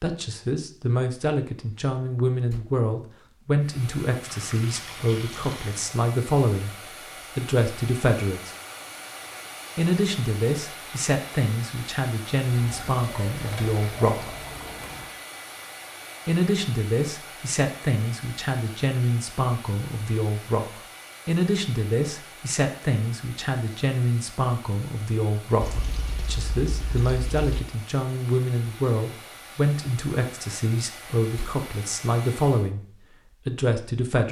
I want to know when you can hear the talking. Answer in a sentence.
You can hear the talking from 0.0 to 6.8 s, from 7.3 to 8.5 s, from 9.8 to 14.3 s, from 16.2 to 32.9 s and from 33.5 to 34.2 s.